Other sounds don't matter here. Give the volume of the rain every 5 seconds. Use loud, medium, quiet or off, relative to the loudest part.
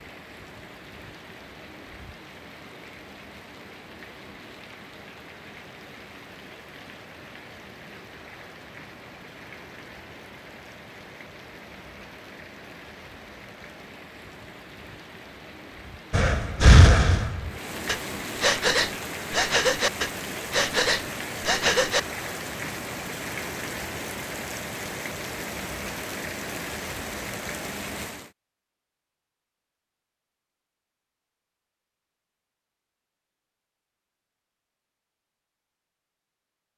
medium, medium, medium, loud, loud, loud, off, off.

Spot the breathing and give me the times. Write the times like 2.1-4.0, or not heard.
16.1-22.0.